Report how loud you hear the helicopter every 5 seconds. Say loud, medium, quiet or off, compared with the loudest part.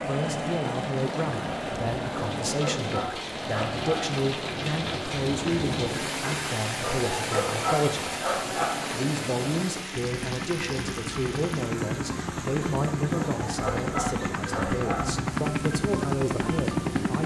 medium, medium, loud, loud.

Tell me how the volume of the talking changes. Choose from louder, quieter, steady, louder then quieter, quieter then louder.
steady.